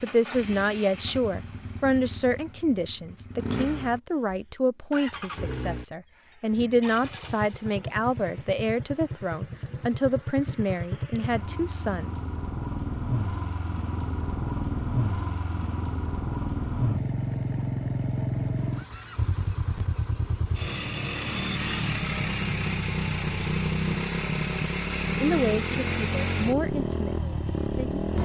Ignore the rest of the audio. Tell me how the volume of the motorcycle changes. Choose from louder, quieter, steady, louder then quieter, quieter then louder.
louder.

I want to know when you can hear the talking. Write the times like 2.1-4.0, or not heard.
0.0-12.2, 25.2-28.2.